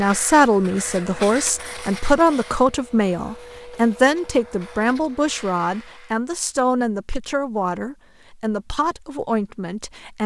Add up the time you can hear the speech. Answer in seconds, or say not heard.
10 s.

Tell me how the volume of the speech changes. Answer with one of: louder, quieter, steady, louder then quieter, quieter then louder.
quieter.